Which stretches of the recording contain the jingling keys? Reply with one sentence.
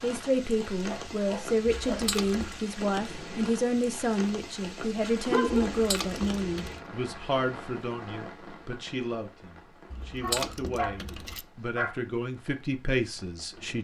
The jingling keys can be heard from 1.9 to 2.6 s, from 5.7 to 6.8 s and from 9.9 to 11.4 s.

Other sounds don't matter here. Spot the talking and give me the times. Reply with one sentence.
The talking can be heard from 0.0 to 13.7 s.